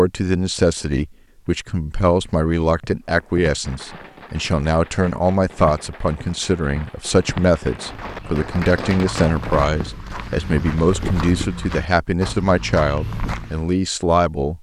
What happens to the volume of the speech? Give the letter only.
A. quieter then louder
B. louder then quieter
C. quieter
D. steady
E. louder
D.